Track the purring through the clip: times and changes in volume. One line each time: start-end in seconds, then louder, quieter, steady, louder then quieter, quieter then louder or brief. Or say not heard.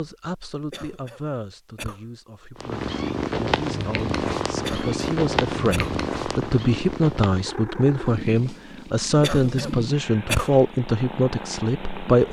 2.5-12.2 quieter.